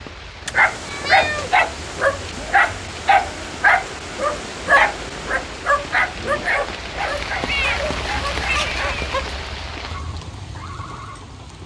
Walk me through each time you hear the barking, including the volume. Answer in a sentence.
You can hear the barking from 0.5 to 9.1 s, getting quieter.